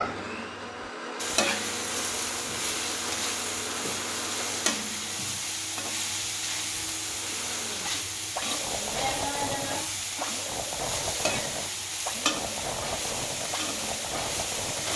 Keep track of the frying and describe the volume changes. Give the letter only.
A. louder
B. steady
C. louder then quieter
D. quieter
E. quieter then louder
B.